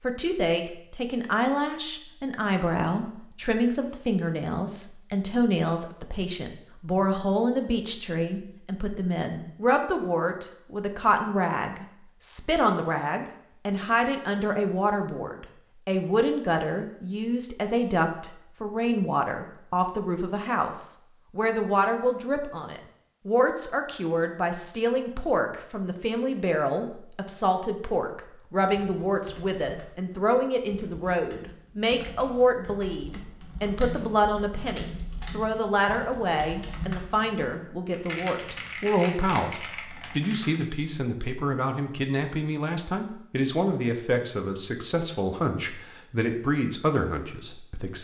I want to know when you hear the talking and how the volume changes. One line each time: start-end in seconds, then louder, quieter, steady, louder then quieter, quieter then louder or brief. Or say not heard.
0.0-47.9 steady.